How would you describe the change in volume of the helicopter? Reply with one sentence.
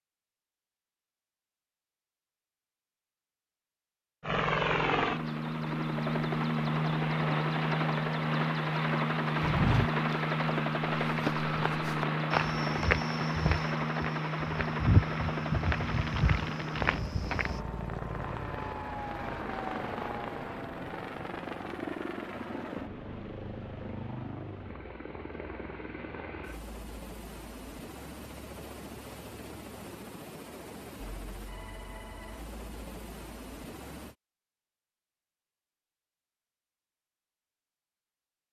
The loudness of the helicopter goes down.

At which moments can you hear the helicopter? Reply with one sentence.
You can hear the helicopter from 4.2 to 34.1 s.